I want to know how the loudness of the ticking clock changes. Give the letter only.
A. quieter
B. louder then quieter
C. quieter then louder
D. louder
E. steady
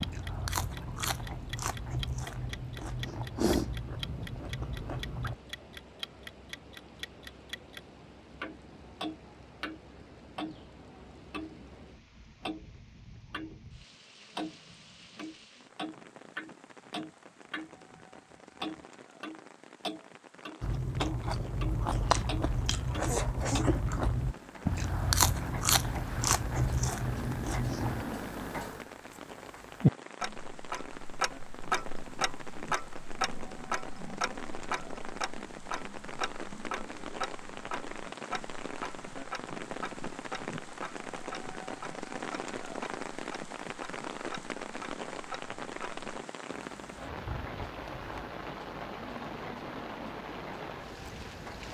B.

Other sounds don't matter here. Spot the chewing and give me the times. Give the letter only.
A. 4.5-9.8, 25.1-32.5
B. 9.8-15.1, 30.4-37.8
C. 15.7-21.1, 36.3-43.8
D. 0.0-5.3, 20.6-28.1
D.